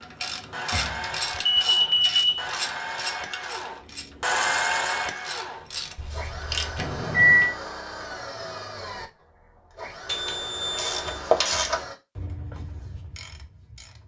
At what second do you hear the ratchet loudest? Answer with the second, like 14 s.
11 s.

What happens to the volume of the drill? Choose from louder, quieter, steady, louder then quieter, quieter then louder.
louder then quieter.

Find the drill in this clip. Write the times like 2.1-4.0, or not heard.
0.0-11.9.